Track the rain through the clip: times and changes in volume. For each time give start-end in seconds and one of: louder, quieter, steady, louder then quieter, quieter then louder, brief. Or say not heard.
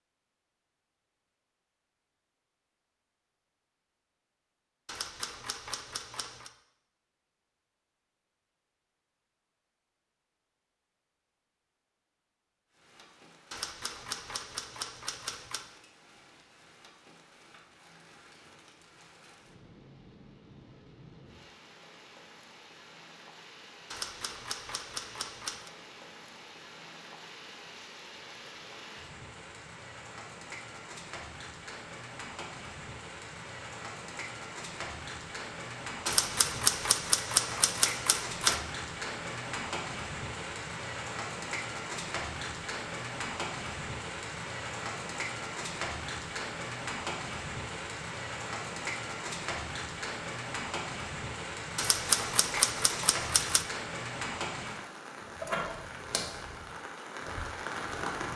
12.7-58.3 louder.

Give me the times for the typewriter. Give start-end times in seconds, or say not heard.
4.8-6.5, 13.5-15.7, 23.9-25.7, 36.0-38.6, 51.8-53.6.